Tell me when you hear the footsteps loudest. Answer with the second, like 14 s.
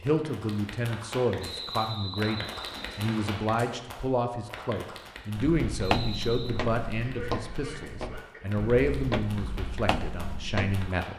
6 s.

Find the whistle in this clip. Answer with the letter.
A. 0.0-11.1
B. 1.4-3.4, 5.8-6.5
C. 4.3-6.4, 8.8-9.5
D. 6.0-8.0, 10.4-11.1
B.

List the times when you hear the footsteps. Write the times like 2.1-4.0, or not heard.
5.3-10.9.